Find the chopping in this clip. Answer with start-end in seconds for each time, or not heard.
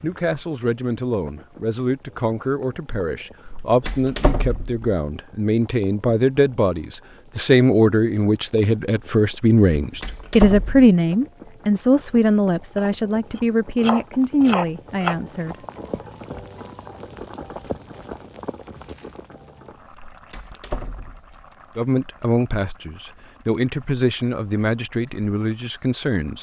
12.8-15.2.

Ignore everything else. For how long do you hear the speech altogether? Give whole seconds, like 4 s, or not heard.
20 s.